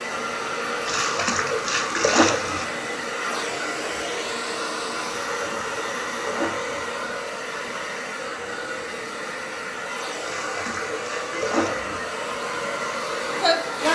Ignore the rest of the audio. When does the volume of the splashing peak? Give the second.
2 s.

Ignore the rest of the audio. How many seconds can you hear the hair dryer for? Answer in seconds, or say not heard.
14 s.